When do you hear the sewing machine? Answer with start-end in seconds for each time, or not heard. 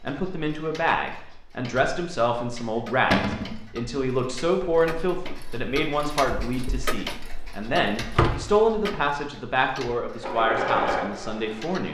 10.2-11.8.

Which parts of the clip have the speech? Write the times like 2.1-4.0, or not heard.
0.1-11.8.